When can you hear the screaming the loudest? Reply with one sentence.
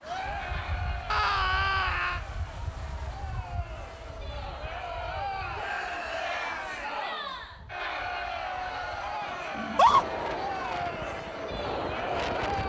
The loudest moment of the screaming is at 10 seconds.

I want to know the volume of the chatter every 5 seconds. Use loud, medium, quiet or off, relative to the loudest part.
medium, loud, loud.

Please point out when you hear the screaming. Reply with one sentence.
You can hear the screaming from 1.1 to 2.2 s, from 5.5 to 6.7 s and from 9.6 to 10.1 s.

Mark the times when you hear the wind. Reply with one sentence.
You can hear the wind from 0.0 to 12.6 s.